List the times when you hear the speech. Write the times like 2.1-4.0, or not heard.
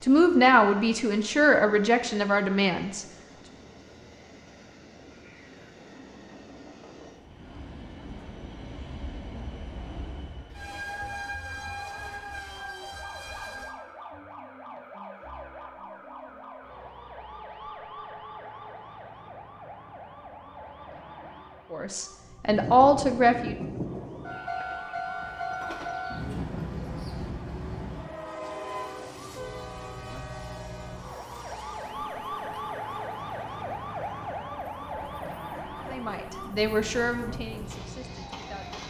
0.0-3.0, 21.7-23.6, 35.8-38.8.